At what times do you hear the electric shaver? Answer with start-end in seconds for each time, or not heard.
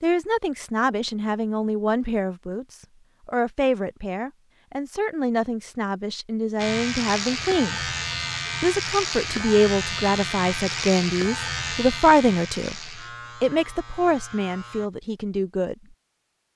6.5-14.9.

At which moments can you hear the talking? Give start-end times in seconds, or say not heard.
0.0-7.8, 8.6-12.8, 13.4-15.9.